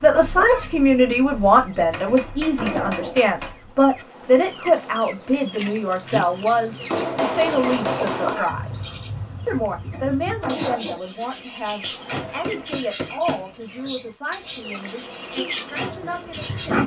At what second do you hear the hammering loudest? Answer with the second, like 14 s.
7 s.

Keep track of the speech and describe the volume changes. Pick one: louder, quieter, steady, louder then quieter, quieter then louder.
quieter.